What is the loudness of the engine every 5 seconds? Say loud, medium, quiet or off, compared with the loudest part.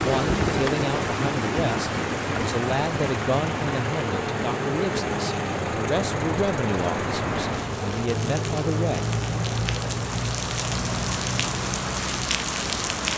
loud, loud, medium.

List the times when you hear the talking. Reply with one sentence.
You can hear the talking from 0.0 to 9.2 s.